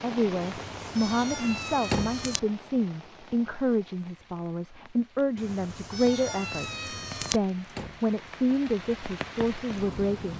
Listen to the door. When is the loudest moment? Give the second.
2 s.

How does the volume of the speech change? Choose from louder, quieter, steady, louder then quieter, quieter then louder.
steady.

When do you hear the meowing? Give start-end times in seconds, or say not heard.
0.4-2.4, 5.3-7.4.